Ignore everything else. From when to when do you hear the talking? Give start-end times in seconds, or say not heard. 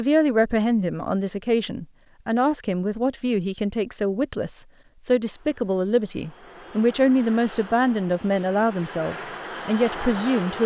0.0-10.6.